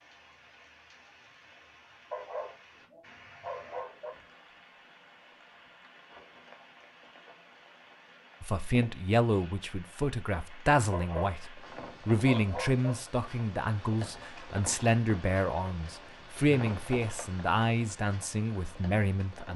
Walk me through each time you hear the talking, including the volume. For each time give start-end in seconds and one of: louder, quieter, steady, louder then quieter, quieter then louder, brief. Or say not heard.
8.4-19.5 steady.